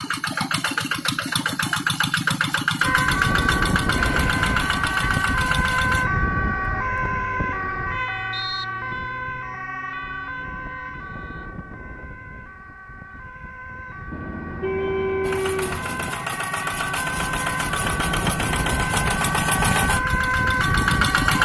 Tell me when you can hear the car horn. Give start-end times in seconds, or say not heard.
4.0-5.1, 14.1-16.1.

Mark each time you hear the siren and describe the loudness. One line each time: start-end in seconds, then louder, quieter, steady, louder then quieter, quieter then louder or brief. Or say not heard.
2.8-21.4 quieter then louder.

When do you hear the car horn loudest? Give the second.
15 s.